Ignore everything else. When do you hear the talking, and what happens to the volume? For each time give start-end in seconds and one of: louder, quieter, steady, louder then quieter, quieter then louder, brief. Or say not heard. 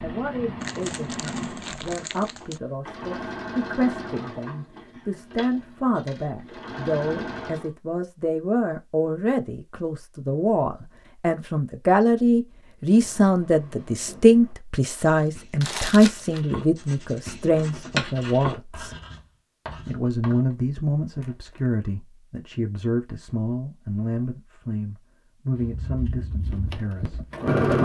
0.0-18.9 louder
19.9-27.8 quieter.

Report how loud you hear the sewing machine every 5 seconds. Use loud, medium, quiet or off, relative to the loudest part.
medium, medium, off, off, off, loud.